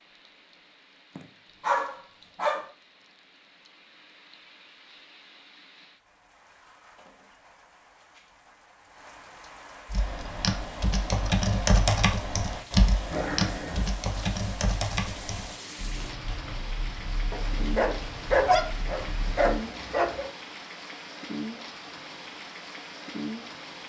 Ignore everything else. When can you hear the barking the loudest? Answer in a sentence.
The volume of the barking peaks at 18 seconds.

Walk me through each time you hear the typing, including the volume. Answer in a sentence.
You can hear the typing from 9.8 to 19.4 s, getting quieter.